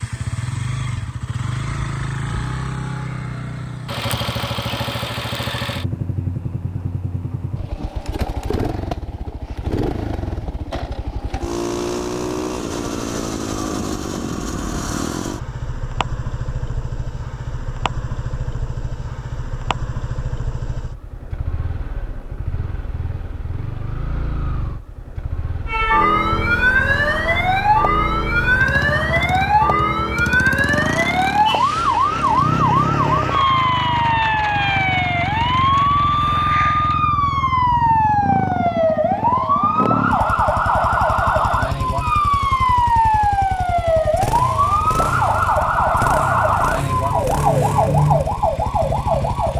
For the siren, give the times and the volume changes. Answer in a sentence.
The siren can be heard from 25.6 to 49.5 s, at a steady volume.